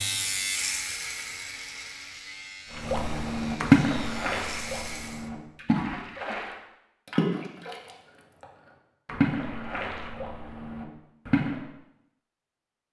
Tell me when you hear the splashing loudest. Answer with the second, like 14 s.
4 s.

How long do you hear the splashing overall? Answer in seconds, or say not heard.
8 s.